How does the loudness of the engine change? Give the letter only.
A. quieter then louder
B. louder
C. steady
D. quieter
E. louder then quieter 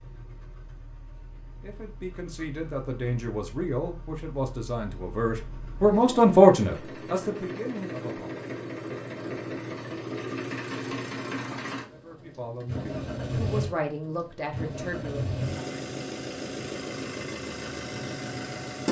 B.